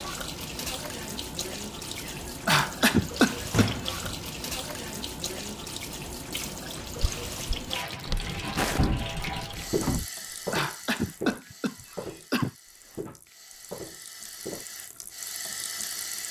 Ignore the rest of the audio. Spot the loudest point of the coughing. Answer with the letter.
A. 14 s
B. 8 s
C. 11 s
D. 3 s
D.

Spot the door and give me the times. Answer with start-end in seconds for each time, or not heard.
3.1-4.0, 8.2-10.1.